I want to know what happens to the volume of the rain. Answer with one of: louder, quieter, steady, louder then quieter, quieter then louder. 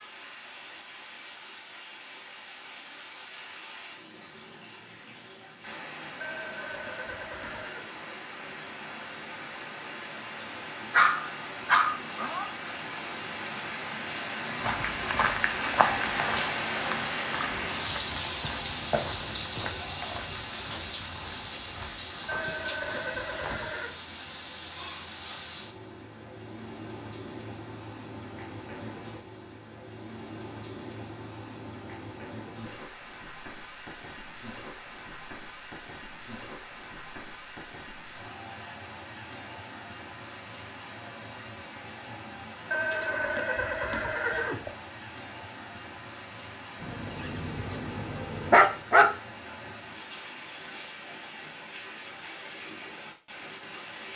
louder then quieter.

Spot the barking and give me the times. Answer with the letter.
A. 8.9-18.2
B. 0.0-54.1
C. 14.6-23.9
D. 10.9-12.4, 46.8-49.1
D.